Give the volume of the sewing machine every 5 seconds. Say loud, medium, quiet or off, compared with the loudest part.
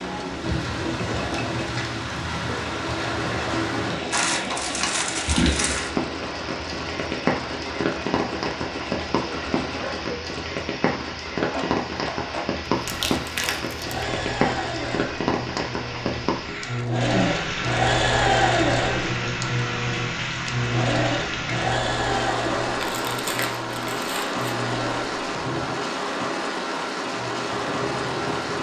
medium, medium, medium, loud, loud, medium.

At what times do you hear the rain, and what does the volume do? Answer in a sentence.
You can hear the rain from 0.0 to 28.5 s, at a steady volume.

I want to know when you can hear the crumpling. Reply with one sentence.
You can hear the crumpling from 4.1 to 5.9 s, from 12.7 to 14.1 s and from 22.8 to 24.6 s.